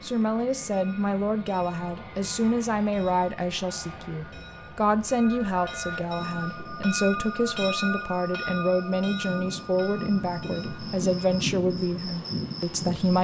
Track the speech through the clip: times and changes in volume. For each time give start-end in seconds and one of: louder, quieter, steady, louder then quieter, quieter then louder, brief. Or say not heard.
0.0-13.1 steady.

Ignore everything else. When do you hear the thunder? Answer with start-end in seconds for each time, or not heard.
not heard.